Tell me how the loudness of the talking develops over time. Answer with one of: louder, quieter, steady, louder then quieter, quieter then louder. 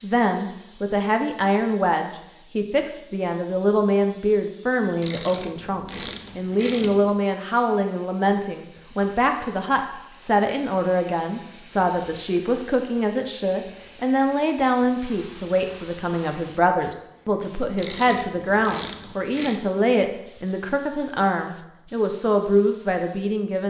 steady.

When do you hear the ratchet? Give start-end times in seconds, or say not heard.
5.0-7.0, 17.8-19.6.